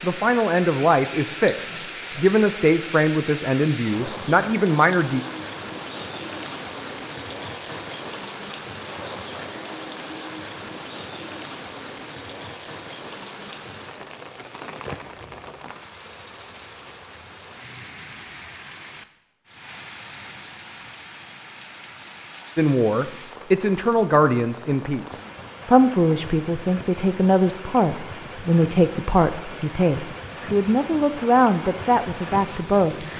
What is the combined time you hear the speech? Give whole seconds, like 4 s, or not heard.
16 s.